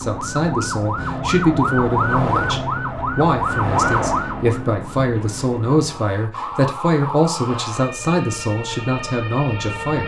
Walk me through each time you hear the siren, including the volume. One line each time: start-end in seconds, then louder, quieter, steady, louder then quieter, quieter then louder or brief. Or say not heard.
0.0-10.0 quieter.